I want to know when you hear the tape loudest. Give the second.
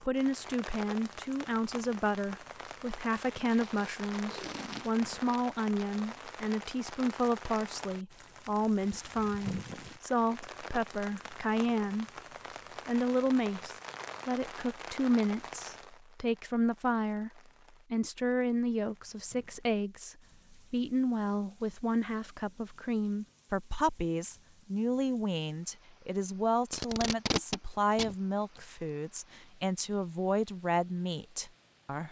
27 s.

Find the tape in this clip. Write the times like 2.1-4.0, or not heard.
3.5-5.0, 26.7-28.6.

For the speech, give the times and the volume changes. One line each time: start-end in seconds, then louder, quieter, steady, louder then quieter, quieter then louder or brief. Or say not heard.
0.0-12.1 steady
12.8-32.0 steady.